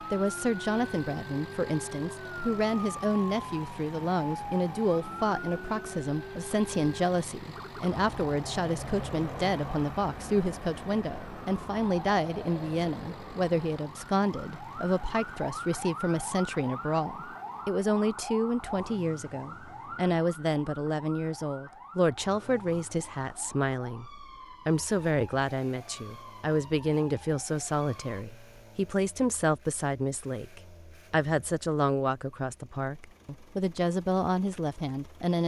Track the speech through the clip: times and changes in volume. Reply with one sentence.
You can hear the speech from 0.1 to 35.4 s, at a steady volume.